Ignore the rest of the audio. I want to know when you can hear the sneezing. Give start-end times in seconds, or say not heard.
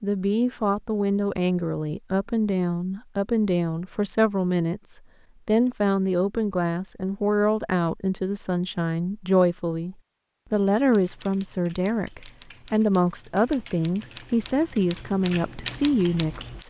not heard.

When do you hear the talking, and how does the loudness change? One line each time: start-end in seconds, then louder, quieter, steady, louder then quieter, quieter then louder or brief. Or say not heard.
0.0-16.6 steady.